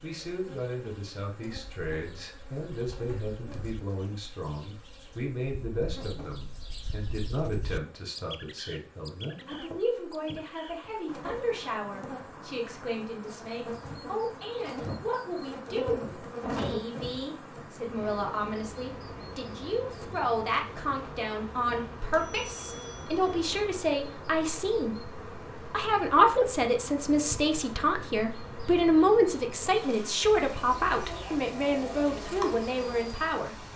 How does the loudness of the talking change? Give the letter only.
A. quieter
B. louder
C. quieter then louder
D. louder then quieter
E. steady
B.